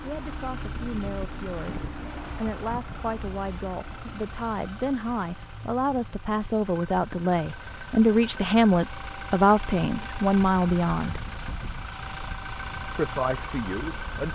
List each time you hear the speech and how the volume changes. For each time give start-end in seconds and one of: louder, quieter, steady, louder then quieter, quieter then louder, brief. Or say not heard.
0.0-11.2 louder
12.9-14.3 brief.